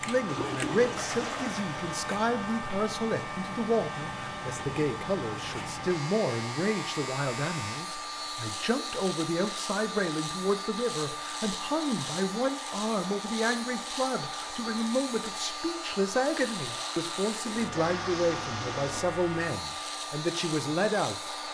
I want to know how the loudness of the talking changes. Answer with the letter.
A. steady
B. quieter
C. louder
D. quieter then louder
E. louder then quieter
A.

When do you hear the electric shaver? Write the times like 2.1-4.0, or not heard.
0.0-21.4.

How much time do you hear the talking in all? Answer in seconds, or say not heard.
21 s.